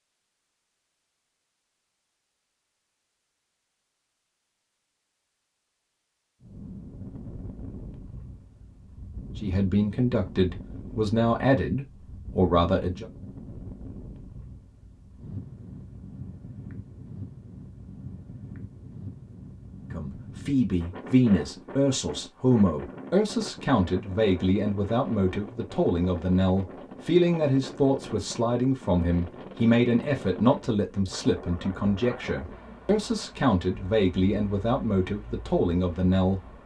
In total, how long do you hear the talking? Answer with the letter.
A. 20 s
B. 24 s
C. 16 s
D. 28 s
A.